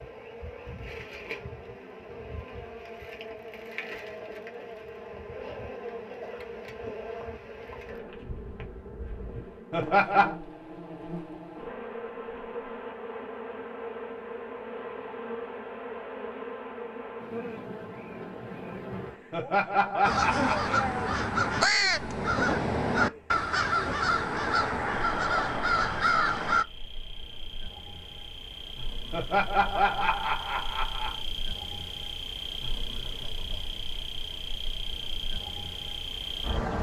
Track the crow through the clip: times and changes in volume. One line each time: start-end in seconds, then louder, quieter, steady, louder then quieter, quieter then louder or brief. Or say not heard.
20.0-26.6 steady.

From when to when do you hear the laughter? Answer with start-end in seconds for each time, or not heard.
9.7-10.3, 19.3-20.8, 29.1-31.2.